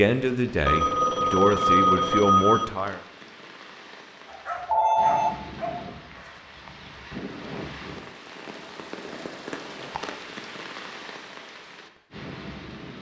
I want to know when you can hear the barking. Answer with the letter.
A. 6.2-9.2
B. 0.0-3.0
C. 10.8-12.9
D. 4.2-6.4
D.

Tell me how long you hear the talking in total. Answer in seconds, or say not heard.
3 s.